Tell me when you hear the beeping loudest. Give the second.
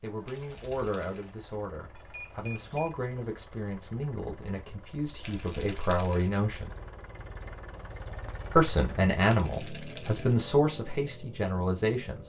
2 s.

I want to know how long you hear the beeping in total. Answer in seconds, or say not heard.
2 s.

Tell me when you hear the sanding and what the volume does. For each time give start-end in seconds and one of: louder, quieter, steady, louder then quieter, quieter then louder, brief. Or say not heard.
not heard.